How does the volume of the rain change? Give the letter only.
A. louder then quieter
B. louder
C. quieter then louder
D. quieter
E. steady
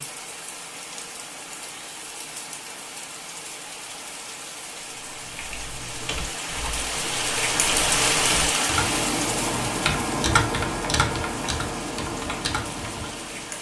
A.